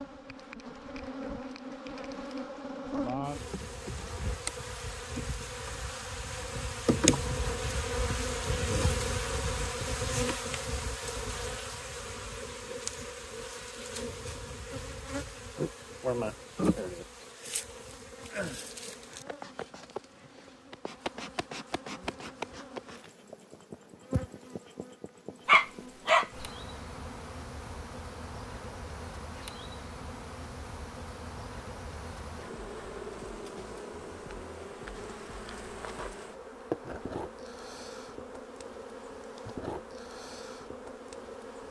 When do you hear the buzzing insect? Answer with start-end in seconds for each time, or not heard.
0.0-41.6.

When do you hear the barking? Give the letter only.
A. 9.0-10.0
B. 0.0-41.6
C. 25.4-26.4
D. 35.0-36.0
C.